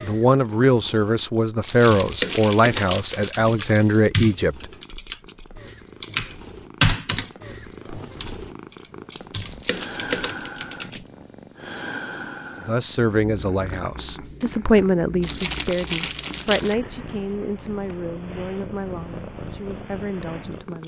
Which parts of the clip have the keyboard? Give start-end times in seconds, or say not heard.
1.6-8.4, 9.1-11.1.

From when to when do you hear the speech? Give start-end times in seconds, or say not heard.
0.0-4.7, 12.6-20.8.